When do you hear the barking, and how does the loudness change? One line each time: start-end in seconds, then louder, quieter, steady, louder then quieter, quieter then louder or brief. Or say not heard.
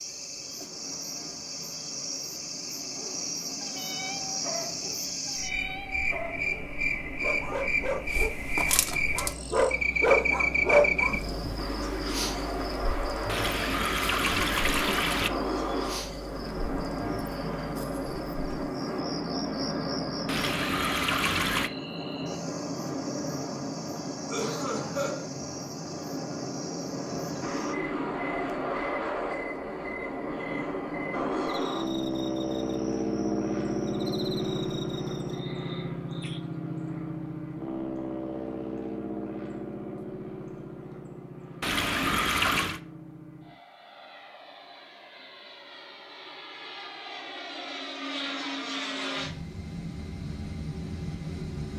2.8-11.2 louder.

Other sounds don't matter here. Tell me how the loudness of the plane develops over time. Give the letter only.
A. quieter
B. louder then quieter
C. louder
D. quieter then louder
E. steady
B.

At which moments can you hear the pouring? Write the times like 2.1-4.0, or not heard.
13.2-15.3, 20.2-21.7, 41.6-42.8.